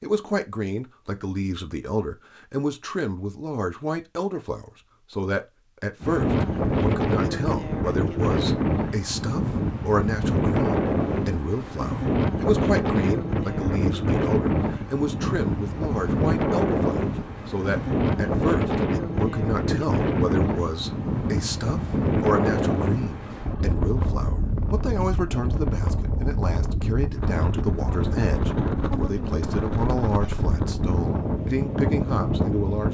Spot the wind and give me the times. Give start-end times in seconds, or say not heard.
6.0-32.9.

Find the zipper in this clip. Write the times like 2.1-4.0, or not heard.
not heard.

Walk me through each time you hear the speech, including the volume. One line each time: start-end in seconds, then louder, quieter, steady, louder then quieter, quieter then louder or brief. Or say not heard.
0.0-32.9 steady.